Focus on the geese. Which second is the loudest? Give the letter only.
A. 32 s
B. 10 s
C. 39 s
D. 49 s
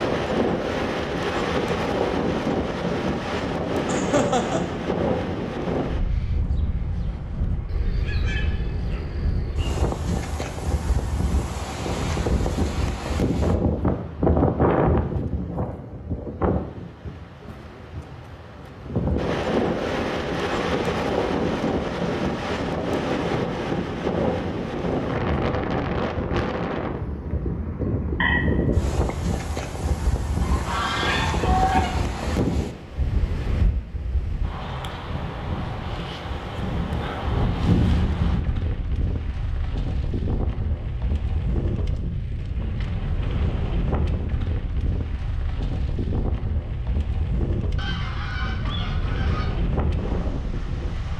A.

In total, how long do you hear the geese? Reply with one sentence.
You can hear the geese for 6 seconds altogether.